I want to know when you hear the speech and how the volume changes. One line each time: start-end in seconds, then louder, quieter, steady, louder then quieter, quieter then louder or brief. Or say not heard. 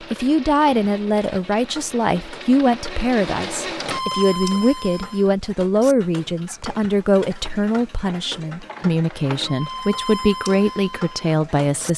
0.1-11.9 steady.